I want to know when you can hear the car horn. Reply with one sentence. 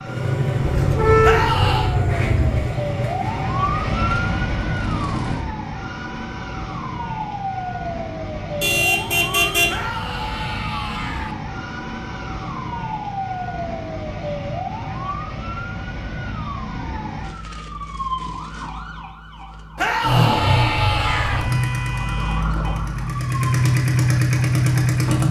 The car horn can be heard from 0.6 to 2.6 s, from 8.6 to 9.7 s and from 21.1 to 22.8 s.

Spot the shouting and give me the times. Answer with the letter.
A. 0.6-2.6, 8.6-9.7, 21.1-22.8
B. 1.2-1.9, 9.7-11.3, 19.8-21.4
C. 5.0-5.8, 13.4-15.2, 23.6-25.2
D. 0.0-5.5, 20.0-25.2
B.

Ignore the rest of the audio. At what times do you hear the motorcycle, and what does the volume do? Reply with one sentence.
The motorcycle can be heard from 0.0 to 5.5 s, getting quieter; and from 20.0 to 25.2 s, getting quieter then louder.